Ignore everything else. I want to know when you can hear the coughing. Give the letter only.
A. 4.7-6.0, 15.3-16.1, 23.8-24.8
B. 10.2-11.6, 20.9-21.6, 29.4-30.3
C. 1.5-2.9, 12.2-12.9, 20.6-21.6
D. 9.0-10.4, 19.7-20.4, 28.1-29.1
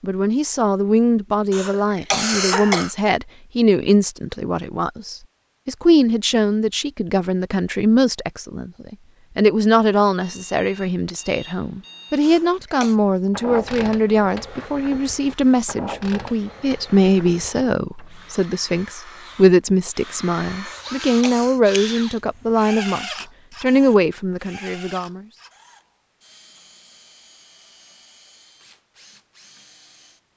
C.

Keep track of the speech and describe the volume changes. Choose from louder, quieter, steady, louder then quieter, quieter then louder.
steady.